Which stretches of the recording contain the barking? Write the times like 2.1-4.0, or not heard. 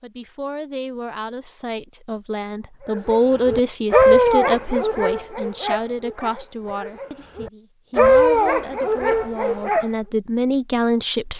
2.9-9.8.